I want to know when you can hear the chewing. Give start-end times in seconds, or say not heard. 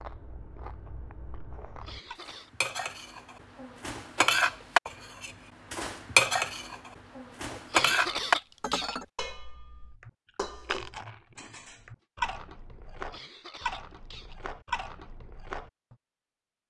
0.0-2.2, 10.0-11.2, 11.8-15.7.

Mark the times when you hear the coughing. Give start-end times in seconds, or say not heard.
1.6-2.5, 7.5-9.0, 12.8-14.4.